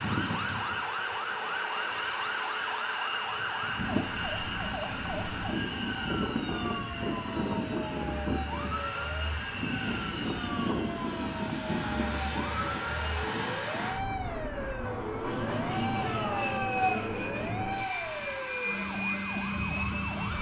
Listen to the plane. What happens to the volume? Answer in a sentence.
The loudness of the plane stays about the same.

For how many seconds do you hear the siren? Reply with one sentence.
The siren can be heard for 20 seconds in total.